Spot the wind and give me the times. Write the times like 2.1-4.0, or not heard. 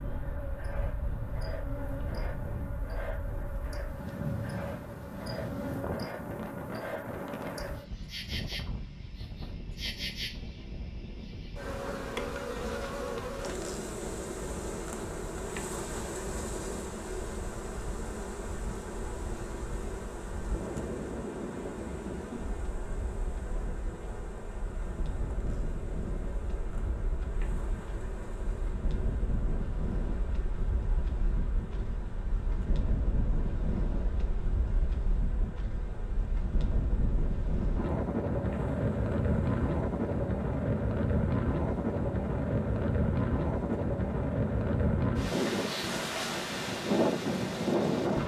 0.0-48.2.